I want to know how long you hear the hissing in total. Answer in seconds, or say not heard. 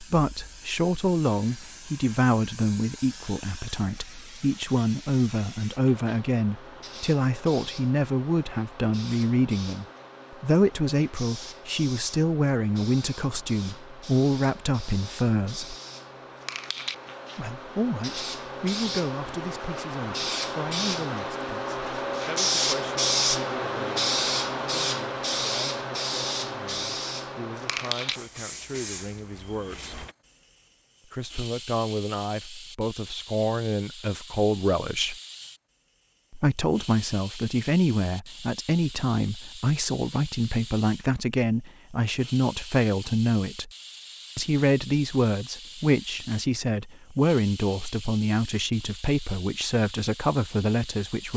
51 s.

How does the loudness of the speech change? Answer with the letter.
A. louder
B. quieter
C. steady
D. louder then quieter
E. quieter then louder
E.